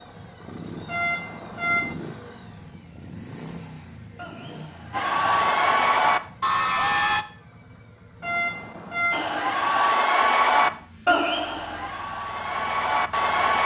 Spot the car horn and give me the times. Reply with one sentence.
You can hear the car horn from 0.8 to 1.9 s and from 8.2 to 9.2 s.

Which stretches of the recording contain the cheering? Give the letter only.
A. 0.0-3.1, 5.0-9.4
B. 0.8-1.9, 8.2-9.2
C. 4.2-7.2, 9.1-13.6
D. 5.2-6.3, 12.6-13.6
C.